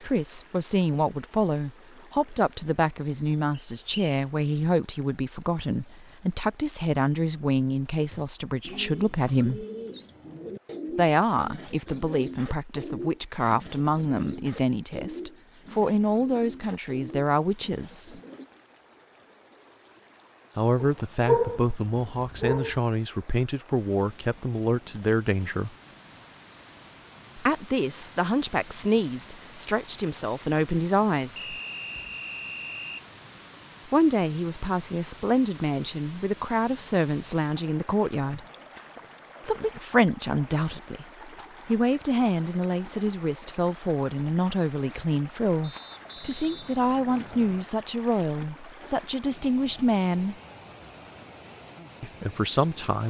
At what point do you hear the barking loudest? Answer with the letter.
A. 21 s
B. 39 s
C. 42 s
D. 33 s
A.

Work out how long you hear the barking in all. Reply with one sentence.
The barking can be heard for 2 seconds in total.